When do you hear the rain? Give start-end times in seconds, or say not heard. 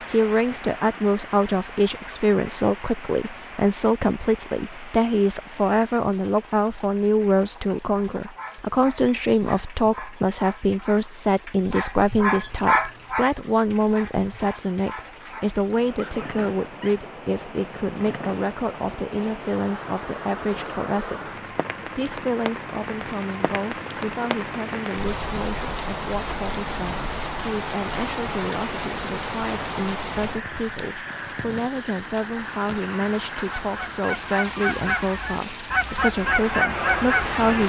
0.0-37.6.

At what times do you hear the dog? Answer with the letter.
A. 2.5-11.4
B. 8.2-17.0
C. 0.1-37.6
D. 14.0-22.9
B.